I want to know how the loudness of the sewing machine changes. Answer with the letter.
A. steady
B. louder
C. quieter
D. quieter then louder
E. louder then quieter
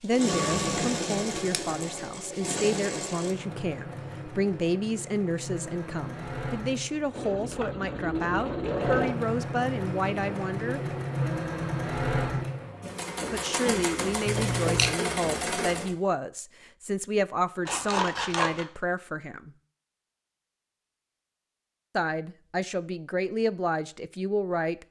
D.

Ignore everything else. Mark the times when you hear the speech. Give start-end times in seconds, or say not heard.
0.0-10.8, 13.3-19.5, 21.9-24.8.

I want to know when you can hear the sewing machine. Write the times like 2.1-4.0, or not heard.
0.0-15.9.